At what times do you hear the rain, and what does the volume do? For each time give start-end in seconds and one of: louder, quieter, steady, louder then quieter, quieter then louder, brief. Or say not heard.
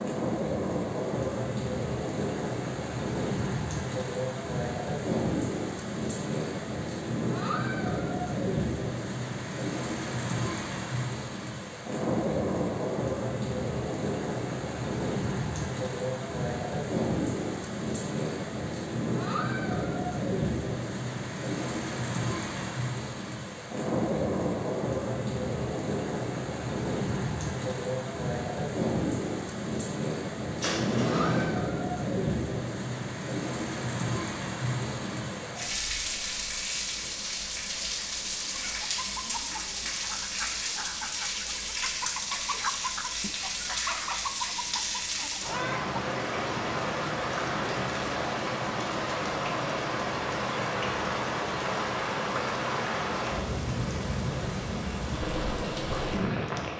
0.0-56.7 steady.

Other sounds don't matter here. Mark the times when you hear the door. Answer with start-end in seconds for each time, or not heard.
30.6-31.6.